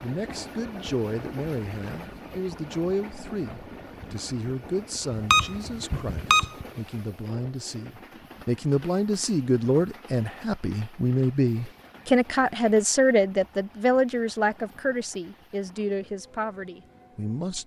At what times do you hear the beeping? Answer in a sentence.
The beeping can be heard from 5.2 to 6.7 s.